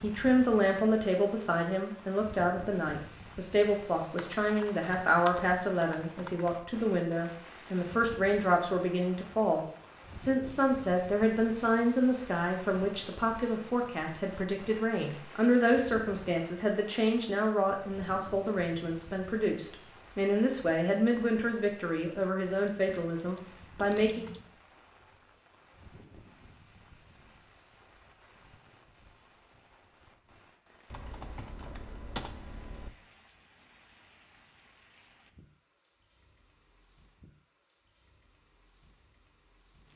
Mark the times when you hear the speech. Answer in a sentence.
You can hear the speech from 0.0 to 9.6 s and from 10.2 to 24.2 s.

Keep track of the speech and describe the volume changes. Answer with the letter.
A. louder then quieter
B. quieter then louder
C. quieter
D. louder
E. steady
E.